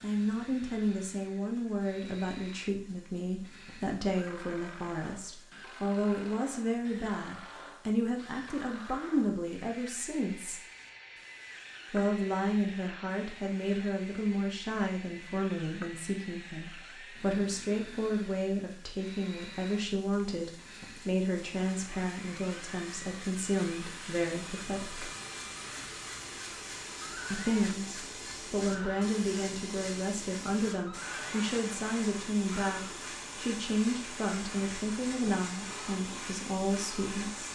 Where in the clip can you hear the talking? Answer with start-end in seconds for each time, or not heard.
0.0-10.7, 11.9-25.1, 27.3-37.5.